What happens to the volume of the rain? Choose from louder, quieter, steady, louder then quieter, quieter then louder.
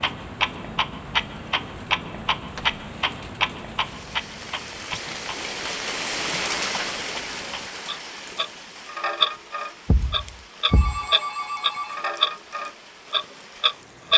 louder then quieter.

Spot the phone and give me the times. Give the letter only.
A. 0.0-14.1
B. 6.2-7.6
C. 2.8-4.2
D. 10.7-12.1
D.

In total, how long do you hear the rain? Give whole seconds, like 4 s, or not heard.
14 s.